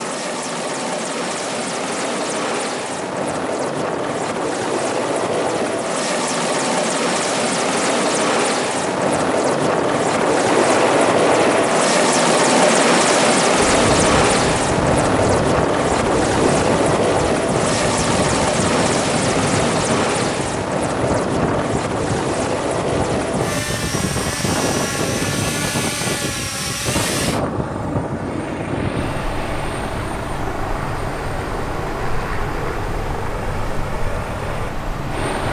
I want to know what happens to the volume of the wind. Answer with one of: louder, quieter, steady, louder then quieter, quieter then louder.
quieter.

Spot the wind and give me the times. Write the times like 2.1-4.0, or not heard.
10.1-35.4.